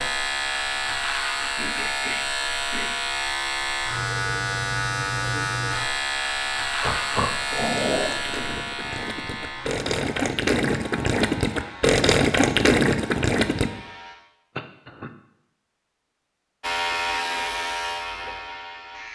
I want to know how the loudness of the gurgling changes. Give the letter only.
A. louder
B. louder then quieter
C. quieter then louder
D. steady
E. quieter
A.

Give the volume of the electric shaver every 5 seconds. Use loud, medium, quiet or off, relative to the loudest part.
loud, loud, quiet, loud.